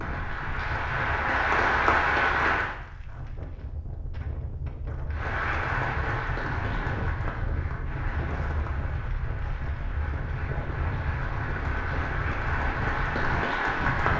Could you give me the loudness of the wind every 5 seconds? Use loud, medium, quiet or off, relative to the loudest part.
medium, loud, loud.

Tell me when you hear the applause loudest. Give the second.
2 s.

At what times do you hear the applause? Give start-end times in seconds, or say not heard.
0.0-2.8, 5.1-14.1.